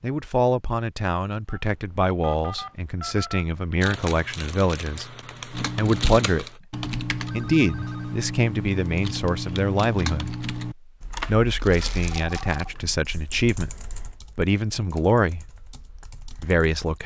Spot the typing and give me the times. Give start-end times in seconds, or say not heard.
5.5-17.0.